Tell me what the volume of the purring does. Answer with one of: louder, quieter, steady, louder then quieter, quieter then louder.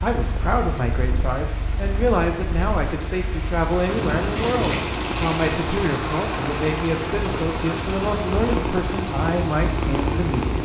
louder.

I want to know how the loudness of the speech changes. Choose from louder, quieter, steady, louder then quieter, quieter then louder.
steady.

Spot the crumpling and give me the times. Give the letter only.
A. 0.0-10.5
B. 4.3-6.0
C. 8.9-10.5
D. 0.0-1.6
B.